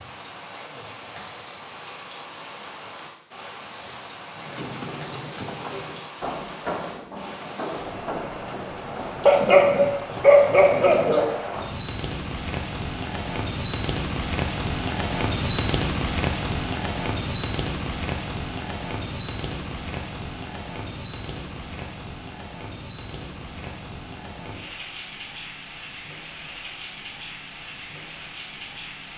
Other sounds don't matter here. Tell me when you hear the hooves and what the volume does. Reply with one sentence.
You can hear the hooves from 4.3 to 9.2 s, at a steady volume.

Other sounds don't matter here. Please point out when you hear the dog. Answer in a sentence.
The dog can be heard from 9.2 to 11.2 s.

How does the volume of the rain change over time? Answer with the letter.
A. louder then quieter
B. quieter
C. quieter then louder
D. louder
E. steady
A.